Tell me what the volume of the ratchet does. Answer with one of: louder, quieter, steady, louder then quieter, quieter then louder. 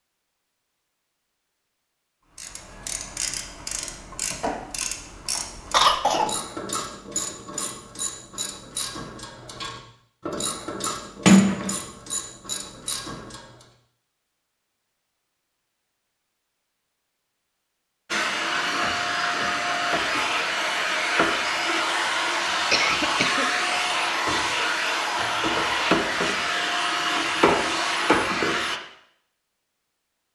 steady.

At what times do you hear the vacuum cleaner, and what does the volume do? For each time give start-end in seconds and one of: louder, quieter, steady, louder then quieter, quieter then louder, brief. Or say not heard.
18.1-28.8 steady.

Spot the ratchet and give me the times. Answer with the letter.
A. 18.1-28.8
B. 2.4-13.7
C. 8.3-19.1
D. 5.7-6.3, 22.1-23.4
B.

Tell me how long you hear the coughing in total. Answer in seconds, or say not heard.
2 s.